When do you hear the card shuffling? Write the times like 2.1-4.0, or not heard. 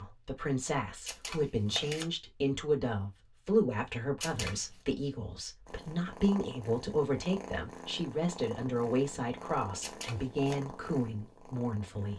1.1-2.0, 4.2-4.8, 9.8-10.6.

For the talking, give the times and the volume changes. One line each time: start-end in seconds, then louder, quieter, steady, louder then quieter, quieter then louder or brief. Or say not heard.
0.0-12.1 steady.